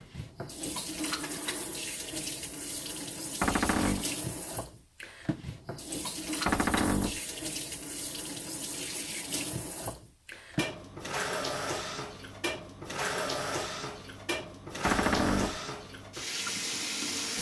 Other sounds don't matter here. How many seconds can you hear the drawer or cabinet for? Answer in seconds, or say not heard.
2 s.